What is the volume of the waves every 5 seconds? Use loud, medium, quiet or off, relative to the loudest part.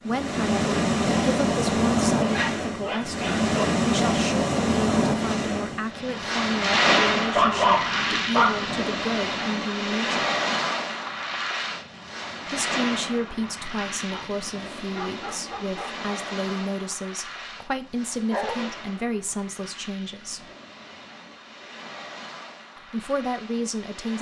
loud, loud, medium, quiet, quiet.